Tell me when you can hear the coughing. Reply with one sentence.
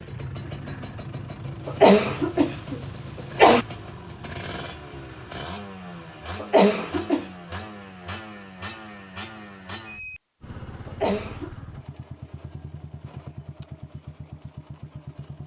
You can hear the coughing from 1.6 to 3.6 s, from 6.4 to 7.2 s and from 10.8 to 11.5 s.